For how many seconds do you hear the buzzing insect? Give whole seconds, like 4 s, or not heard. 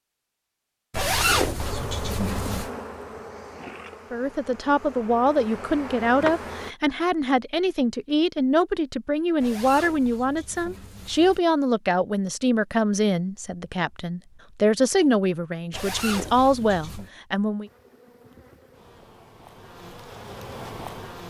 9 s.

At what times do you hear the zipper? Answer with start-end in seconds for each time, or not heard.
0.9-2.7, 9.4-11.4, 15.7-17.1.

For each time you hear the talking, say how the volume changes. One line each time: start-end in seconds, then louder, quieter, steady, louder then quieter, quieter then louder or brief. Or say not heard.
4.1-17.7 steady.